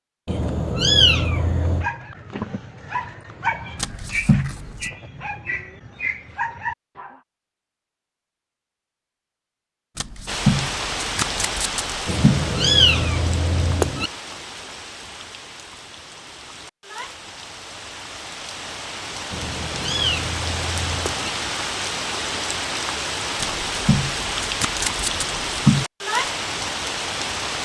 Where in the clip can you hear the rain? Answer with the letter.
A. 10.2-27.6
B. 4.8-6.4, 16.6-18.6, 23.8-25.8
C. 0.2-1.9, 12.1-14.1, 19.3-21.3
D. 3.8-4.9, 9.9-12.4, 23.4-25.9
A.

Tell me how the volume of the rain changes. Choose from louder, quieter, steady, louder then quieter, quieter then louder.
quieter then louder.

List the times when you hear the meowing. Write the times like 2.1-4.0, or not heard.
0.2-1.9, 12.1-14.1, 19.3-21.3.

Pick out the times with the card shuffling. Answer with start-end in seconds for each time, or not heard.
3.8-4.9, 9.9-12.4, 23.4-25.9.